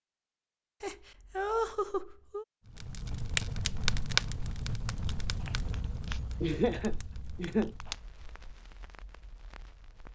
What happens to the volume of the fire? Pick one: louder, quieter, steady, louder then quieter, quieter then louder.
quieter.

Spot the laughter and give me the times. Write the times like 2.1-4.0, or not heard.
0.8-2.5, 5.5-7.8.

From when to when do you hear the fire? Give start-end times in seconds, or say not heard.
2.6-10.0.